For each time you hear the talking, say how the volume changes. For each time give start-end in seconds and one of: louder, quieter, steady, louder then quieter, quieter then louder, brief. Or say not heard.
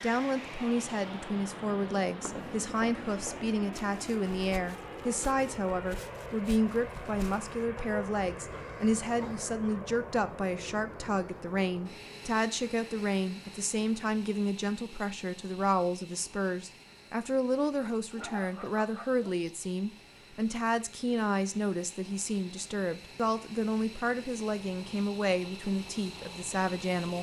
0.0-27.1 steady.